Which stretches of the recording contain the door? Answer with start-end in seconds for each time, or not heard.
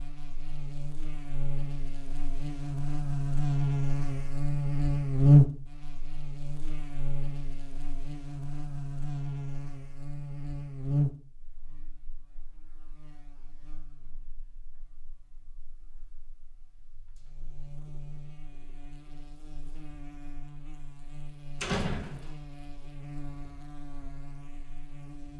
21.6-22.3.